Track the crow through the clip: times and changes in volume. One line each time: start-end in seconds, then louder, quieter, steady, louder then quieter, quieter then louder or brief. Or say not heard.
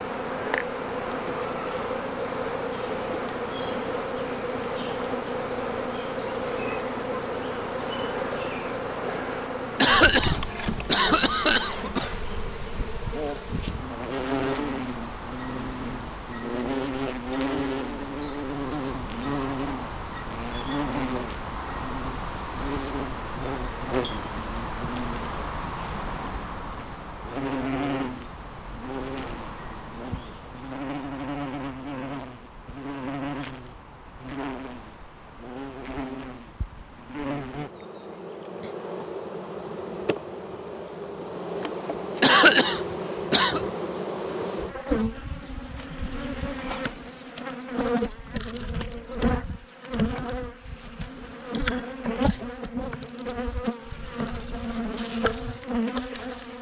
not heard.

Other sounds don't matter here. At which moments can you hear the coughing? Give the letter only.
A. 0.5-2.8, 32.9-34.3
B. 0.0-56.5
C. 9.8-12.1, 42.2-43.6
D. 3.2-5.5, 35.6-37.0
C.